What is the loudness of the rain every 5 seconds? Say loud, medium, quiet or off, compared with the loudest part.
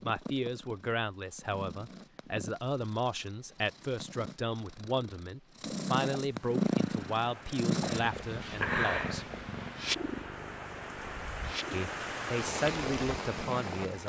off, medium, loud.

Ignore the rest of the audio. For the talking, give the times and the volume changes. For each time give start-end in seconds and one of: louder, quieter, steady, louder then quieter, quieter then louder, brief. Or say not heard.
0.0-9.3 steady
11.7-14.0 brief.